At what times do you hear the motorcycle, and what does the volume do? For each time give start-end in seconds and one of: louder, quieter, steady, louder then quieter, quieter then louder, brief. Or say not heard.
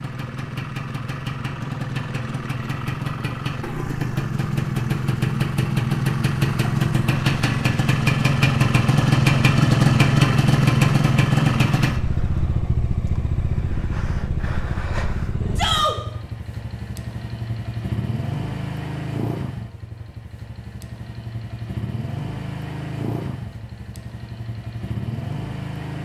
0.0-26.0 louder then quieter.